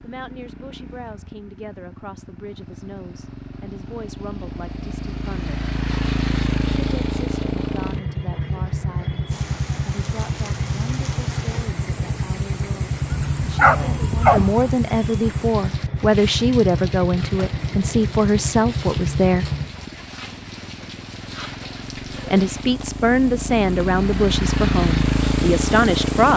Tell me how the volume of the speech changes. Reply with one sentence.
The loudness of the speech goes up.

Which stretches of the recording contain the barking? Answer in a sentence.
The barking can be heard from 13.1 to 14.7 s.